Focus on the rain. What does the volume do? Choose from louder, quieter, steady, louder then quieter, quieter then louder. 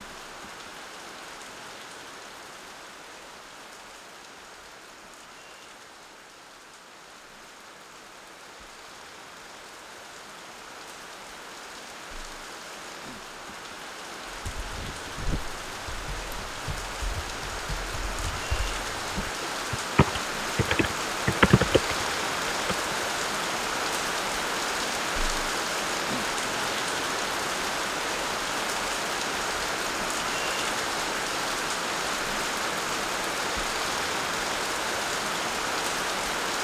louder.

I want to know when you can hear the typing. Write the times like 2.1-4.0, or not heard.
14.2-22.9.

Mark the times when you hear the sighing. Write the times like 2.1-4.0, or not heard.
not heard.